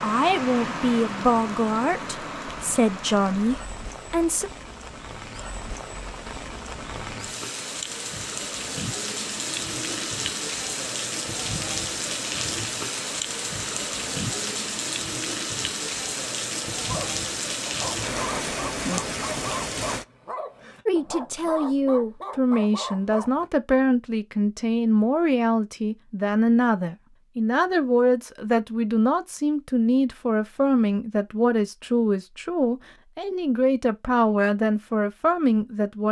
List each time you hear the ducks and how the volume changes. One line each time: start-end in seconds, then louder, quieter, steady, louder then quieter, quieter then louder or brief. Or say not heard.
not heard.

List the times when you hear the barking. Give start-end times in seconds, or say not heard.
16.9-23.4.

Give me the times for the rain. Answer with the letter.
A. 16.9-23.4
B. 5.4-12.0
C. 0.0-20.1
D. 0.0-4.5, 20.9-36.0
C.